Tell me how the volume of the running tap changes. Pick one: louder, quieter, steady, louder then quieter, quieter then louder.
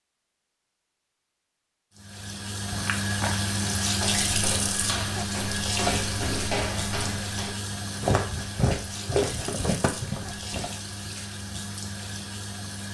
quieter.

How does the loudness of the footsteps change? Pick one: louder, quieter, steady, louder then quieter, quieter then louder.
louder.